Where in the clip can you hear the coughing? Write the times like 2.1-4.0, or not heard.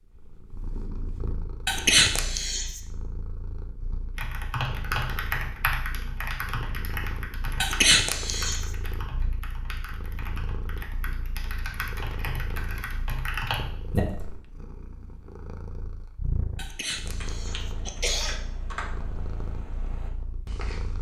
1.6-2.8, 7.6-8.7, 16.6-18.4.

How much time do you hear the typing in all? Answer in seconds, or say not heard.
14 s.